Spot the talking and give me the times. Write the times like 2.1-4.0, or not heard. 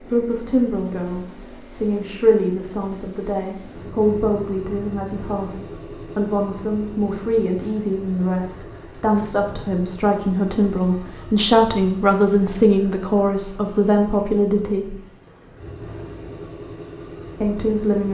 0.1-14.9, 17.4-18.0.